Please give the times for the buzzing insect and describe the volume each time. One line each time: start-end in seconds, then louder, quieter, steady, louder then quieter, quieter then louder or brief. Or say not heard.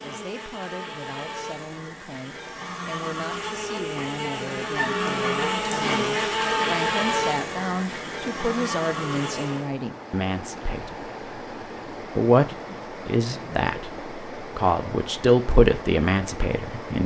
0.0-9.7 louder then quieter.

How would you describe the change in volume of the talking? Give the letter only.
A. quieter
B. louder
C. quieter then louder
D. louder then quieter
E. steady
B.